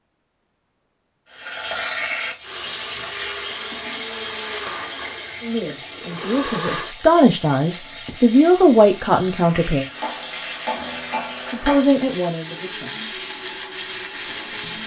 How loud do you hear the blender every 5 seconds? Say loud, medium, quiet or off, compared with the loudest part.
loud, loud, medium.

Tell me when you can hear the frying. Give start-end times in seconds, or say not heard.
1.3-14.8.